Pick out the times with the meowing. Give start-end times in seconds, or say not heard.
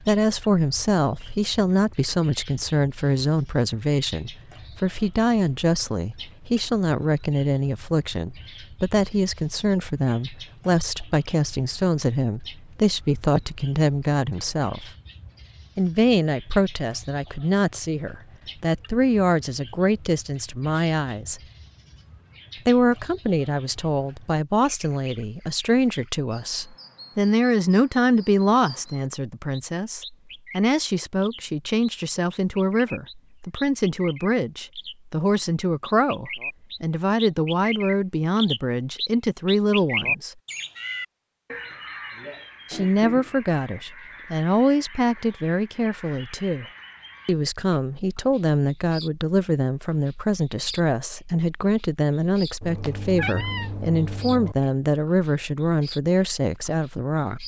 52.6-54.5.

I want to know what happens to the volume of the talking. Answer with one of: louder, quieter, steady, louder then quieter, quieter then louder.
steady.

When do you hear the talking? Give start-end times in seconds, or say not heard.
0.1-14.9, 15.8-21.4, 22.6-40.4, 42.7-46.6, 47.2-57.4.